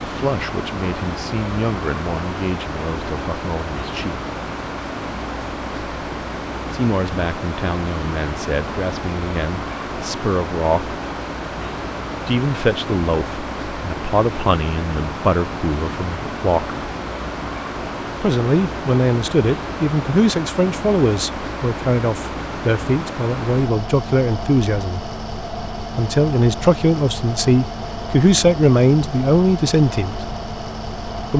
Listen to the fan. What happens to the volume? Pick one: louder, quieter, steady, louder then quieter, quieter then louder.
steady.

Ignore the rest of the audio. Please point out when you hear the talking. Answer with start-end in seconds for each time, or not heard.
0.0-4.2, 6.7-10.9, 12.2-16.8, 18.2-25.0, 25.8-30.1.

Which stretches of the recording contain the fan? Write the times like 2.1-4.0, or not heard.
0.0-31.3.